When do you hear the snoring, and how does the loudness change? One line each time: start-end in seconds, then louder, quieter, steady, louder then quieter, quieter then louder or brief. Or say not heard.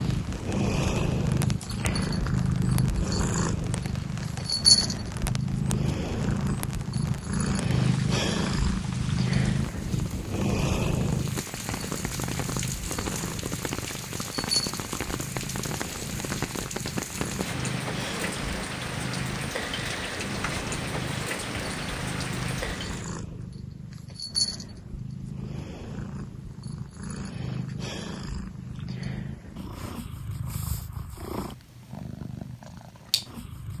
not heard.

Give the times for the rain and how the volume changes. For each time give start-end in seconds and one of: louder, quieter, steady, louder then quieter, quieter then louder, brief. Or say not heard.
0.0-23.1 louder.